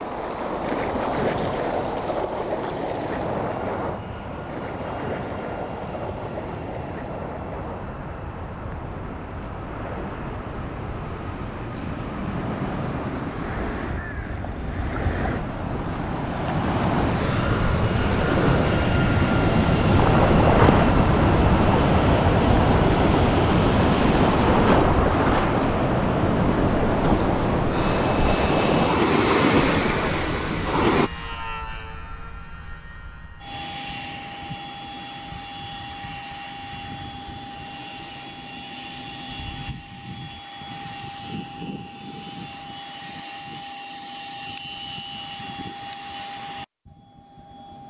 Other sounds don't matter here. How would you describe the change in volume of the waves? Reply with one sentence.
The loudness of the waves goes down, then up.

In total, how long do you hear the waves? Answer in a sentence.
You can hear the waves for 31 seconds altogether.